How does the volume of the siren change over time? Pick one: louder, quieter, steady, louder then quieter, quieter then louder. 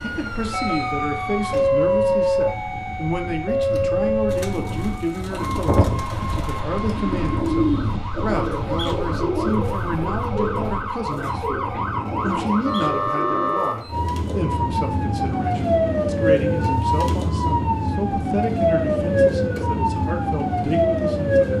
quieter then louder.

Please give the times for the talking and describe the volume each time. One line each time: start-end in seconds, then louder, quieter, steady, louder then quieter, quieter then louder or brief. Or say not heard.
0.0-21.5 steady.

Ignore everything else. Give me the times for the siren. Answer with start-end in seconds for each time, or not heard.
0.0-21.5.